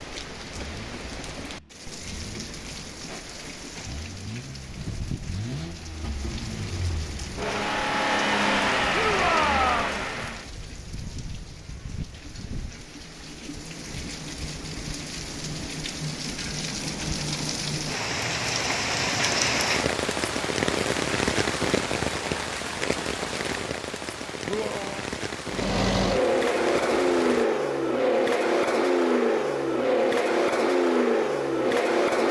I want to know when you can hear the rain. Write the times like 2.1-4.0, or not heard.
0.0-27.4.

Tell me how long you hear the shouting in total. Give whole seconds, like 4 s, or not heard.
2 s.